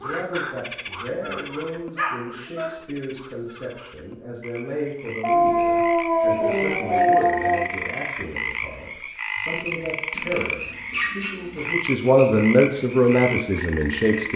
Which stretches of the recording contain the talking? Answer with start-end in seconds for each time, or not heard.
0.0-14.3.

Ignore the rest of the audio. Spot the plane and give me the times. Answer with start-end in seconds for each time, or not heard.
not heard.